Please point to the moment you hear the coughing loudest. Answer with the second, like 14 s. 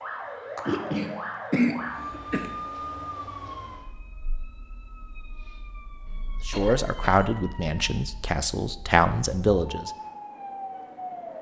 2 s.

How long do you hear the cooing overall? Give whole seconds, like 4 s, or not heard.
not heard.